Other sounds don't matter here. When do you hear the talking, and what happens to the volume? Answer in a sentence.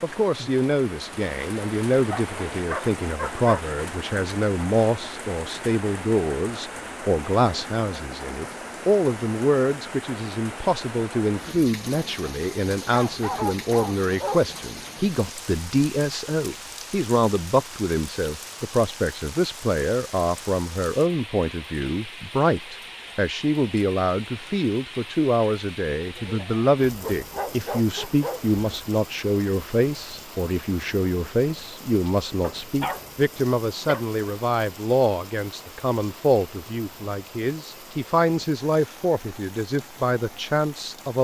You can hear the talking from 0.0 to 41.1 s, at a steady volume.